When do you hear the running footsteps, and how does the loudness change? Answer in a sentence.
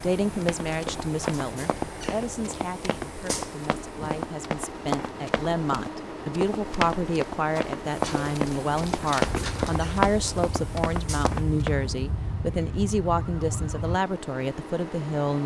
You can hear the running footsteps from 0.2 to 11.8 s, getting louder.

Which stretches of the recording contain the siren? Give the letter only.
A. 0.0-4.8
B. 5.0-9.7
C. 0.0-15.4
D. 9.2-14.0
D.